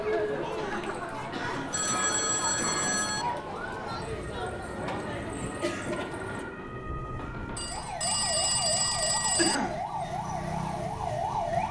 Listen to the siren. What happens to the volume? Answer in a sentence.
The volume of the siren goes up.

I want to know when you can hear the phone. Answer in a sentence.
You can hear the phone from 1.7 to 3.2 s and from 7.5 to 9.6 s.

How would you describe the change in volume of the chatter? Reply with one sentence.
The volume of the chatter stays about the same.